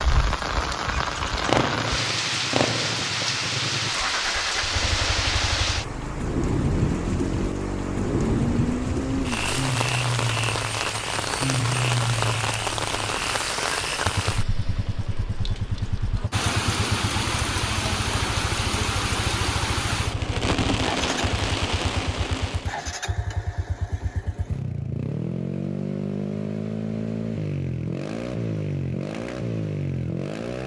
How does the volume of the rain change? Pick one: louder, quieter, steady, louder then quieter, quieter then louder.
steady.